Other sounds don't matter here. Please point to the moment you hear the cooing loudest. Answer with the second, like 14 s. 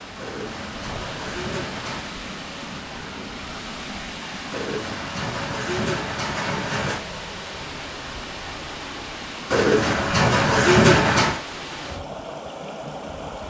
11 s.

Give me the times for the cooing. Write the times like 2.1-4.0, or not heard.
0.1-2.1, 4.5-7.0, 9.5-11.4.